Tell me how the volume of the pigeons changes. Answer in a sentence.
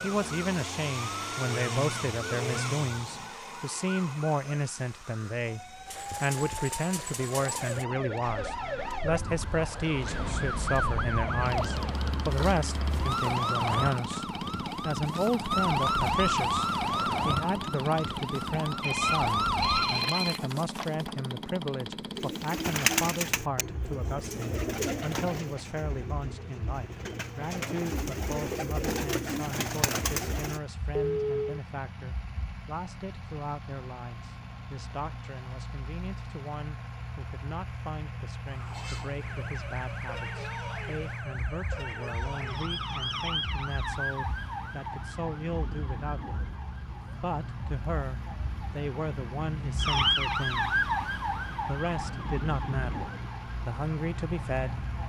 The loudness of the pigeons goes down, then up.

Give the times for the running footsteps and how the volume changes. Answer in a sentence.
The running footsteps can't be heard in this clip.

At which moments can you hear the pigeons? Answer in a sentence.
The pigeons can be heard from 22.1 to 30.6 s.